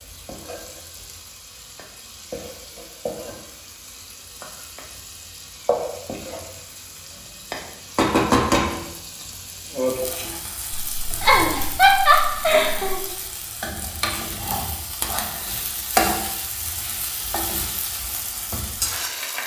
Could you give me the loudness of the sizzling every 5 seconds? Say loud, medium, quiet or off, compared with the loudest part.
quiet, loud, medium, loud.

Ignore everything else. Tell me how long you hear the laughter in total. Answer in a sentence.
You can hear the laughter for 2 seconds altogether.